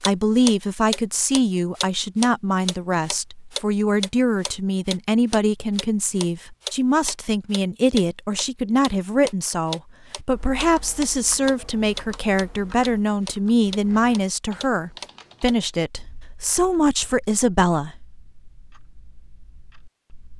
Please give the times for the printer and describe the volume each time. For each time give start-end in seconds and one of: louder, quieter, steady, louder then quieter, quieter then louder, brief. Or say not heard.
not heard.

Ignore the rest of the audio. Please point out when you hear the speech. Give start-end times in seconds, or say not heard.
0.0-17.9.